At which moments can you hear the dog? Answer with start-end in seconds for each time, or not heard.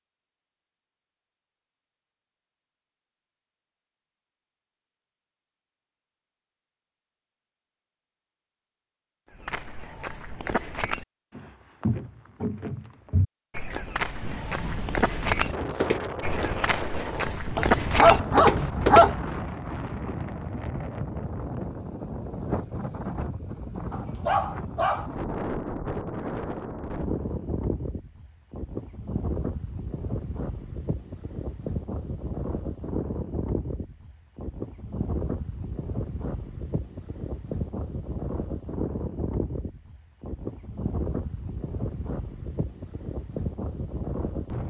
17.6-19.2, 23.9-25.1.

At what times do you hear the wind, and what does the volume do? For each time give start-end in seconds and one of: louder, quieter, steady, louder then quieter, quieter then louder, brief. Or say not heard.
14.0-44.6 steady.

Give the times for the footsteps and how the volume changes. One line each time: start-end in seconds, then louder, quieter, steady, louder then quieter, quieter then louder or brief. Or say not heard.
9.3-19.1 louder.